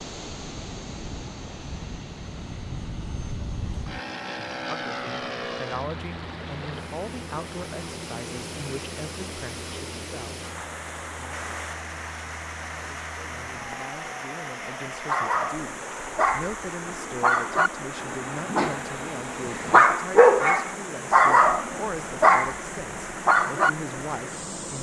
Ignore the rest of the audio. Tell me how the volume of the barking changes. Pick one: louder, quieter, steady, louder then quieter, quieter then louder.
louder.